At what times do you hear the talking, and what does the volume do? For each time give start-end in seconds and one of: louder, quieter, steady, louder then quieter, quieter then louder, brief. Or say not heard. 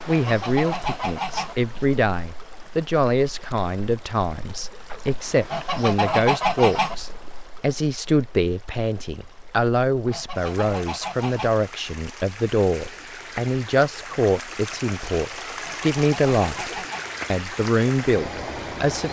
0.1-16.7 steady
17.3-19.0 brief.